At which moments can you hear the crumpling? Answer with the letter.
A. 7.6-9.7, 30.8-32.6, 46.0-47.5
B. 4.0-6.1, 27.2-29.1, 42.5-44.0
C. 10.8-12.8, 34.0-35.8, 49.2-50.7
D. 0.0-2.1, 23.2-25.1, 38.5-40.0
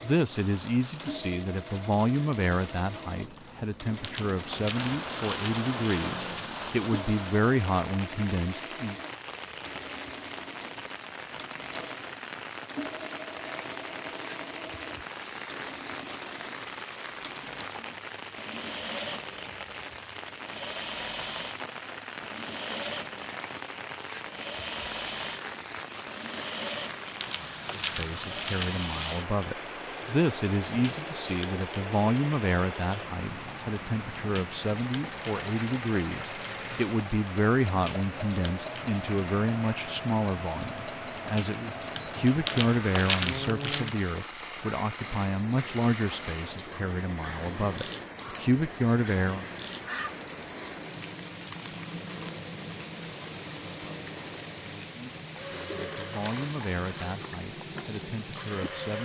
B.